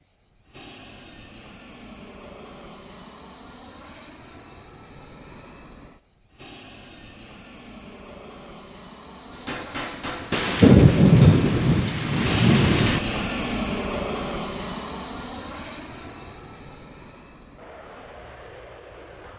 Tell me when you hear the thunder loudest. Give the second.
11 s.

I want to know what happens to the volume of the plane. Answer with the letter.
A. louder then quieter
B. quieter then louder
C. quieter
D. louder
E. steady
A.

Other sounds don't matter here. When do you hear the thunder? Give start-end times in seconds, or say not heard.
10.3-13.0.